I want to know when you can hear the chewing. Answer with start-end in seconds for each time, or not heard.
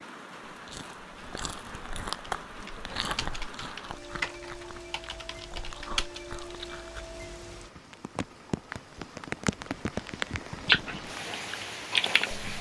0.5-7.0.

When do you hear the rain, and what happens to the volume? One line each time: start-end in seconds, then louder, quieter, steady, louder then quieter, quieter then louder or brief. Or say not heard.
0.0-12.5 louder.